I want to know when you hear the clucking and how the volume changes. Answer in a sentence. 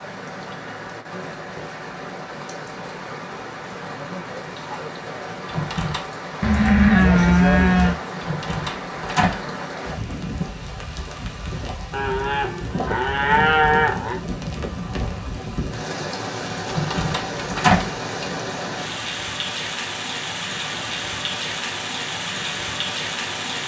You can't hear the clucking here.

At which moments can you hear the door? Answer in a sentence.
The door can be heard from 5.5 to 6.0 s, from 8.2 to 9.4 s and from 16.6 to 17.9 s.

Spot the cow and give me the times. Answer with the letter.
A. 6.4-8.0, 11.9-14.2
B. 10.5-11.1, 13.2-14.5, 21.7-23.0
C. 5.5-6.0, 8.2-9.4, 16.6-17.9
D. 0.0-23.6
A.